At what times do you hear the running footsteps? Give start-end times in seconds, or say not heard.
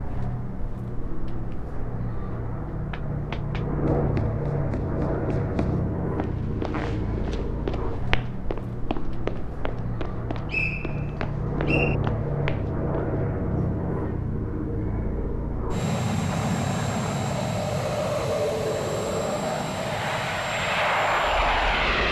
2.7-13.2.